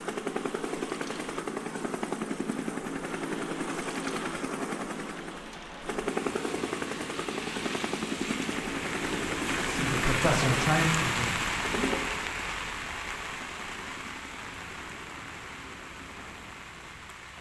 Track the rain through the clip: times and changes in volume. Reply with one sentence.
You can hear the rain from 0.0 to 17.3 s, getting louder then quieter.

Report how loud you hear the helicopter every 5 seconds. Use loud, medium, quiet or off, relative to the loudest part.
loud, loud, medium, quiet.